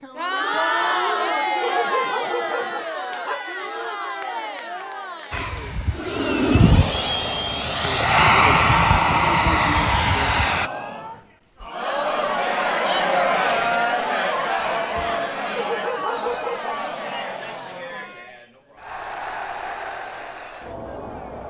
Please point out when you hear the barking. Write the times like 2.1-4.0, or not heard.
1.6-3.5, 15.6-16.8.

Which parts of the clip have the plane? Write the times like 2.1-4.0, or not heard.
5.3-10.7.